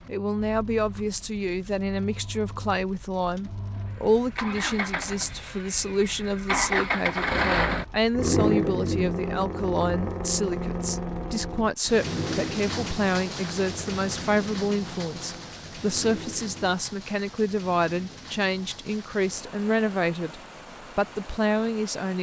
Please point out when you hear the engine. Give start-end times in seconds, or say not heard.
0.0-16.8.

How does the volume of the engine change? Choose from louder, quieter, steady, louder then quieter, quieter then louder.
louder then quieter.